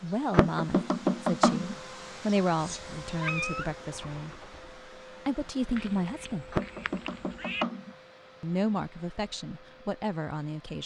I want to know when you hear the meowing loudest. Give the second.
3 s.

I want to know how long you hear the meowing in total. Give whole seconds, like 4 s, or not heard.
3 s.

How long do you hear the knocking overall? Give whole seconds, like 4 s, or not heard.
3 s.